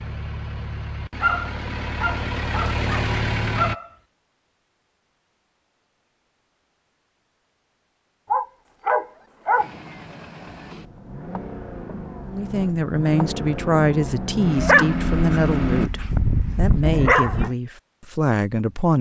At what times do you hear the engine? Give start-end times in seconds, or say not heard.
0.0-3.8, 9.6-15.9.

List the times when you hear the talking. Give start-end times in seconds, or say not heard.
12.2-18.9.